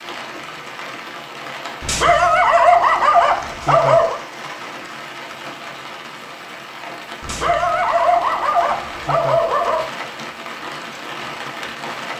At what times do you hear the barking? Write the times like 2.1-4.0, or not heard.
1.8-4.2, 7.2-9.8.